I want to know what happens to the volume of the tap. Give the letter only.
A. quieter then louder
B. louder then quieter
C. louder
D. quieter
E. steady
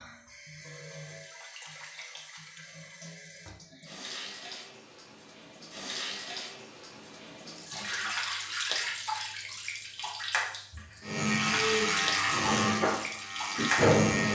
C.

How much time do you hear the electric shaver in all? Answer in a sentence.
You can hear the electric shaver for 3 seconds altogether.